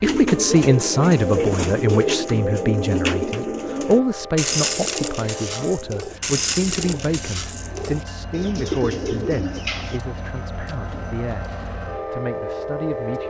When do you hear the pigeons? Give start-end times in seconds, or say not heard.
0.0-10.0.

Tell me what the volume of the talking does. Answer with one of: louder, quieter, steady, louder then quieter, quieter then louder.
quieter.